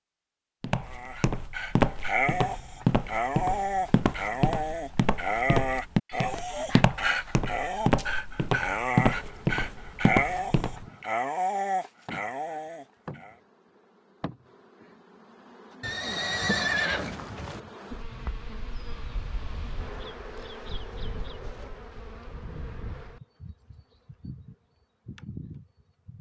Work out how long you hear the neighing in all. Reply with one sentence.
You can hear the neighing for 2 seconds altogether.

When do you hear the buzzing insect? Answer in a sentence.
The buzzing insect can be heard from 9.1 to 26.1 s.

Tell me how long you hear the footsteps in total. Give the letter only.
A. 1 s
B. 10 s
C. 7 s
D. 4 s
B.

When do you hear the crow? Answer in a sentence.
The crow can't be heard in this clip.